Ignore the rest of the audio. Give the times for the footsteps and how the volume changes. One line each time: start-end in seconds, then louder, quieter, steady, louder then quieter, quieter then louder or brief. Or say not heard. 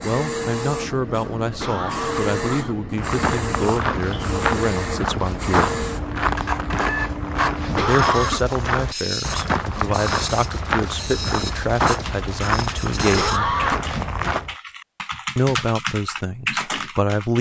3.0-14.6 steady.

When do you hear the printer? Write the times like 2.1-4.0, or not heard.
0.0-13.4.